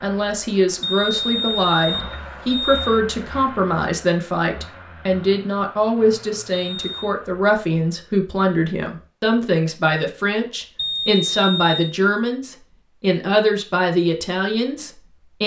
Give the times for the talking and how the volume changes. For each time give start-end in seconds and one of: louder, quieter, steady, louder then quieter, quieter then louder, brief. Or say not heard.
0.0-15.4 steady.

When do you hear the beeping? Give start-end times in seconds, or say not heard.
0.8-3.0, 6.5-7.2, 10.8-11.9.